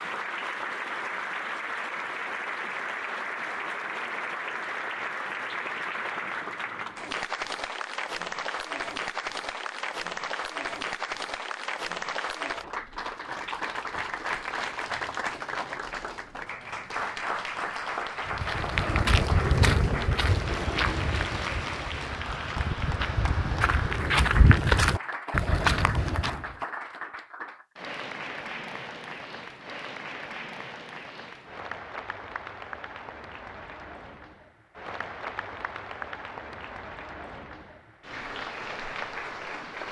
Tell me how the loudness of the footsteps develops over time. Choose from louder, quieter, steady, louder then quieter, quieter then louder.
quieter then louder.